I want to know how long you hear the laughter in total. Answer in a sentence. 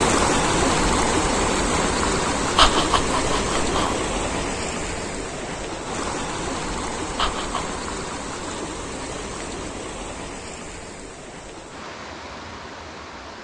You can hear the laughter for 2 seconds altogether.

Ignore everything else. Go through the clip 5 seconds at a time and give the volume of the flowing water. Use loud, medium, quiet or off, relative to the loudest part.
loud, medium, quiet.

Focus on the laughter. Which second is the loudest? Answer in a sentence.
The loudest moment of the laughter is at 3 seconds.